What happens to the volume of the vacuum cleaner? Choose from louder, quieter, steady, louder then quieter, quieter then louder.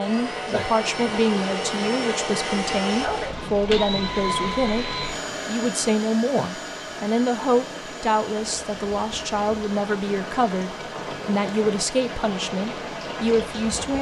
quieter.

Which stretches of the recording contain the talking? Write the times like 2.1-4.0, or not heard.
0.0-13.9.